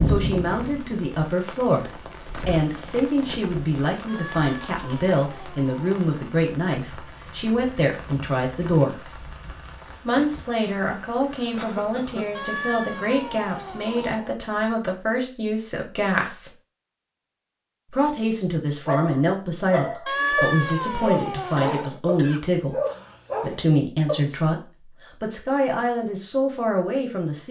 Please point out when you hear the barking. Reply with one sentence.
You can hear the barking from 18.9 to 24.4 s.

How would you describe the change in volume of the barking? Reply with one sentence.
The loudness of the barking stays about the same.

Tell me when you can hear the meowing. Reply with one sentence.
The meowing can be heard from 4.0 to 6.0 s, from 12.3 to 14.3 s and from 20.1 to 21.9 s.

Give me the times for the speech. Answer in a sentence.
You can hear the speech from 0.0 to 9.1 s, from 10.1 to 16.5 s, from 17.9 to 22.8 s and from 23.4 to 27.4 s.